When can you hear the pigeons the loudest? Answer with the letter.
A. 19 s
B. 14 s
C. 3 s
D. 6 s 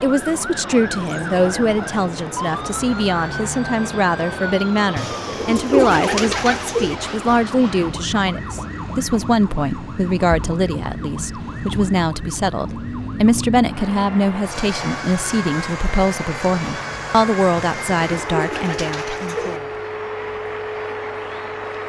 D.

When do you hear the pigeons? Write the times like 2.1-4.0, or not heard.
5.0-7.0, 17.6-19.6.